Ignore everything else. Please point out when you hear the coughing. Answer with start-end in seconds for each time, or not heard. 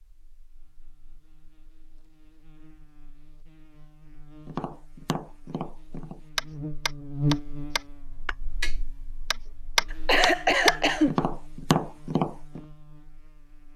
9.9-11.2.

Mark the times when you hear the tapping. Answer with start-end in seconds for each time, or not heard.
4.5-12.6.